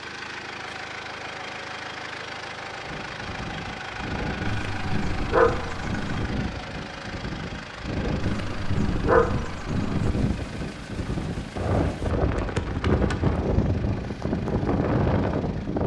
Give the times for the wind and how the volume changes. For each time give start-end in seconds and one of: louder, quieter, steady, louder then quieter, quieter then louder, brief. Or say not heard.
2.7-15.8 louder.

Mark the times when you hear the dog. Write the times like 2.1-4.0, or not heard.
4.5-6.3, 8.2-10.2.